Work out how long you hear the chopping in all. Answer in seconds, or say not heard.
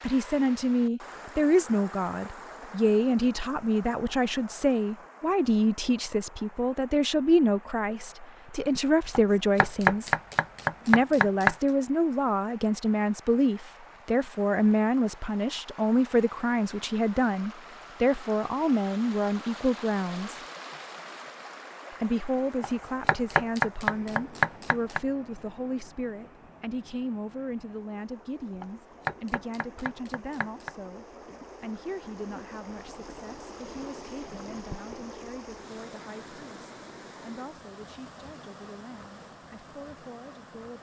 7 s.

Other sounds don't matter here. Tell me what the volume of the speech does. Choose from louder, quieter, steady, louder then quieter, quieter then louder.
quieter.